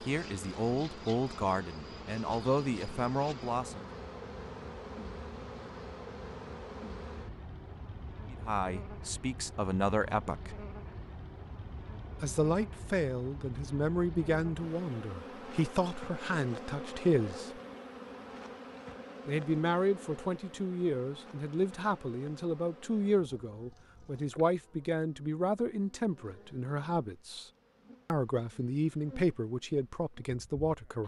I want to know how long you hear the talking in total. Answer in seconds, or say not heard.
23 s.